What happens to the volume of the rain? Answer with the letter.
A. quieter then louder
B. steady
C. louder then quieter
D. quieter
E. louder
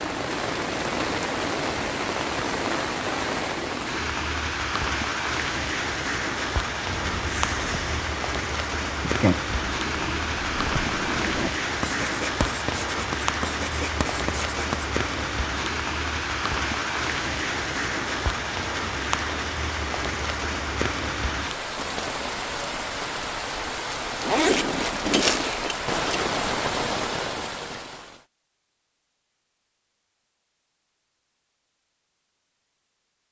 B.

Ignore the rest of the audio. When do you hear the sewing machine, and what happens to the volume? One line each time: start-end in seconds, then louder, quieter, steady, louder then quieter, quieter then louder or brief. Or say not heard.
not heard.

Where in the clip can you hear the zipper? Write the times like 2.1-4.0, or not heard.
24.2-26.1.